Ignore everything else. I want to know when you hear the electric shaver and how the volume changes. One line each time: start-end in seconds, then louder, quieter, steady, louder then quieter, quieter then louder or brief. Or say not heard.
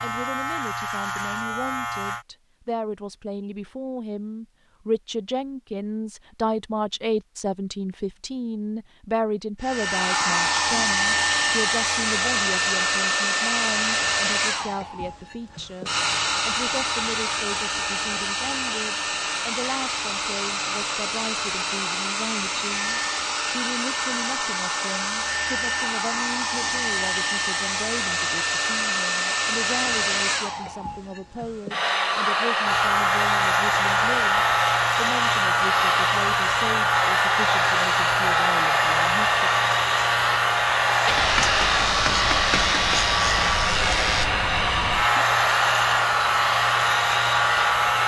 0.0-2.2 brief
32.6-48.0 steady.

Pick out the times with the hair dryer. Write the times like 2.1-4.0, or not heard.
9.6-48.0.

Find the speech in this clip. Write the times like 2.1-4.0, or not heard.
0.0-39.5.